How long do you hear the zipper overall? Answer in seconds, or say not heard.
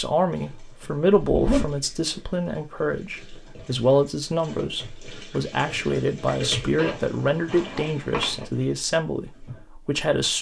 2 s.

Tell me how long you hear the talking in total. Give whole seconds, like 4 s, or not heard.
10 s.